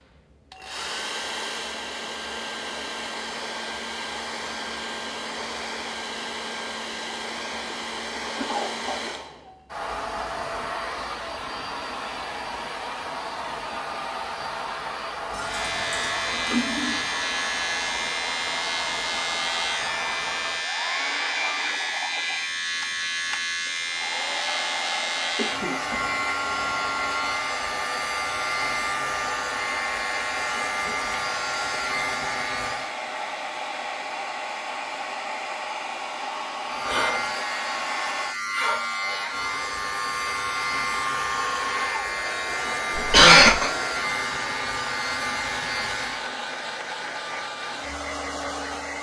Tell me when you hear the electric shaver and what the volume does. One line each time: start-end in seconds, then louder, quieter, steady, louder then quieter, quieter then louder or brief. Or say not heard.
15.3-33.0 steady
36.6-46.3 steady.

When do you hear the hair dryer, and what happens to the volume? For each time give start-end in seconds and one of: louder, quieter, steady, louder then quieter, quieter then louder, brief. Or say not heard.
0.0-48.9 steady.